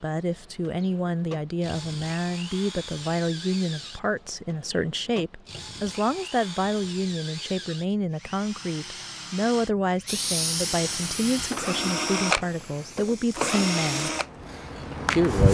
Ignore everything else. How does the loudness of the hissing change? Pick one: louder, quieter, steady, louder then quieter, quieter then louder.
quieter then louder.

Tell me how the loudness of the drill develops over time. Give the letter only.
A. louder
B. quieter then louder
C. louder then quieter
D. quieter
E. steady
A.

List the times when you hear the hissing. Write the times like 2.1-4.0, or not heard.
10.1-15.4.